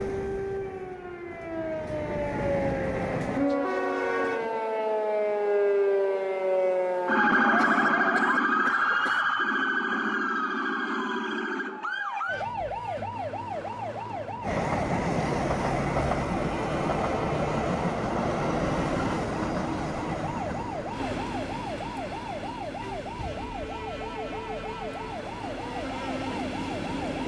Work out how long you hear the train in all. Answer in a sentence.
The train can be heard for 17 seconds in total.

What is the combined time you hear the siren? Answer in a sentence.
You can hear the siren for 27 seconds altogether.